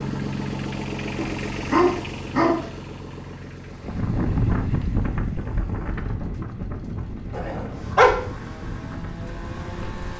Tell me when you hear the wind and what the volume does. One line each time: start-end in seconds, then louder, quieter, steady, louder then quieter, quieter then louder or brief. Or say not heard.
3.7-10.1 quieter.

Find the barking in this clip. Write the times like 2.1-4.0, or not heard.
1.1-2.6, 7.3-8.2.